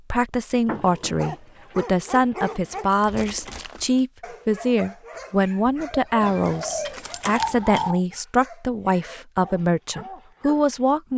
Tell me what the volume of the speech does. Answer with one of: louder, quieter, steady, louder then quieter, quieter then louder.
steady.